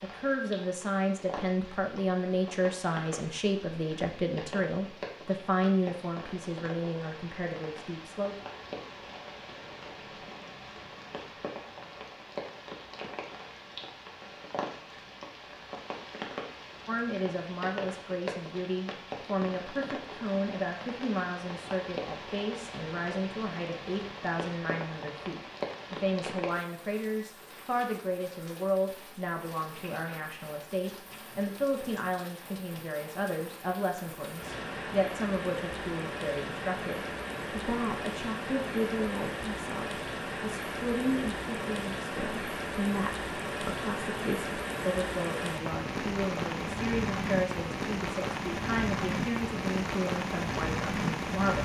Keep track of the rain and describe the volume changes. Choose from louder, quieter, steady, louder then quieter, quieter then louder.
louder.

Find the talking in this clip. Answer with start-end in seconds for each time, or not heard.
0.0-8.3, 16.9-51.6.